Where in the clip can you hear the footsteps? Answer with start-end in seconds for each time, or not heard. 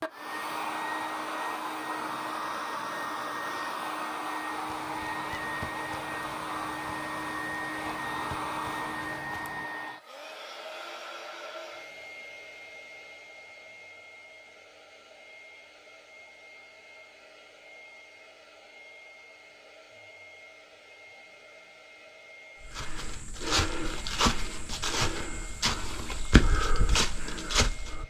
4.5-9.7, 22.6-28.0.